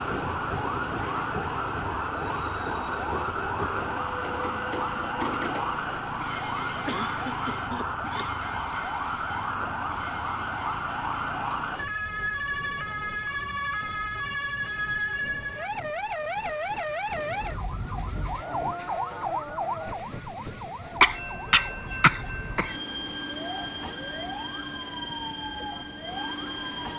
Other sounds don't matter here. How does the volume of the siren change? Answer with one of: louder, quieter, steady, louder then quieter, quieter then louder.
quieter.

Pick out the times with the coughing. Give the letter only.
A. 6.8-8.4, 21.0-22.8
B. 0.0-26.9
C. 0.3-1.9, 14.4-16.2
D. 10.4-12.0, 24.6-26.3
A.